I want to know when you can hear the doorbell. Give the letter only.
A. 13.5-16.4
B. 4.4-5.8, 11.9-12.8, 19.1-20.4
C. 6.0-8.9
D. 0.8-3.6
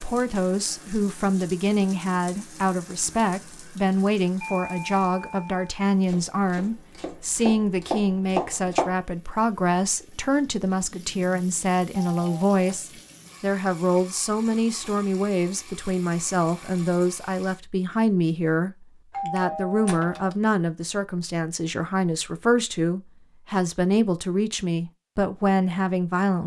B.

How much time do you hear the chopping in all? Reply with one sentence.
The chopping can be heard for 3 seconds in total.